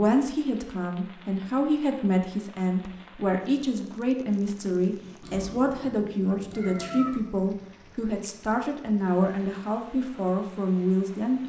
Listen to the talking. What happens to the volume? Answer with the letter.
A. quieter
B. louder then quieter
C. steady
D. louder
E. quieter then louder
C.